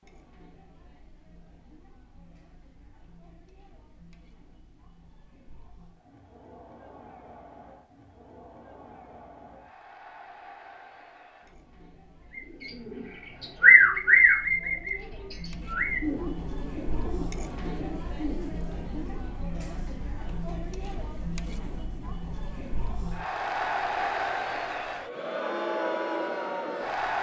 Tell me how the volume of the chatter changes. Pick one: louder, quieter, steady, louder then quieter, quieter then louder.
louder.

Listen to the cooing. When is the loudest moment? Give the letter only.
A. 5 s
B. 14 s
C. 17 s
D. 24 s
B.